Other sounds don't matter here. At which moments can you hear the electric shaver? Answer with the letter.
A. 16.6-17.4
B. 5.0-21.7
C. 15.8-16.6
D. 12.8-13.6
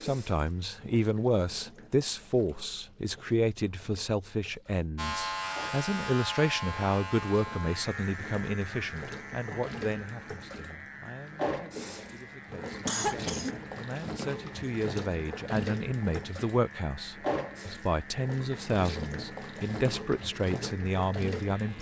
B.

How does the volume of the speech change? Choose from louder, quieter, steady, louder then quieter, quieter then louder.
quieter then louder.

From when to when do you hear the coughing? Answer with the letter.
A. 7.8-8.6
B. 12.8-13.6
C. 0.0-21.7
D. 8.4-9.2
B.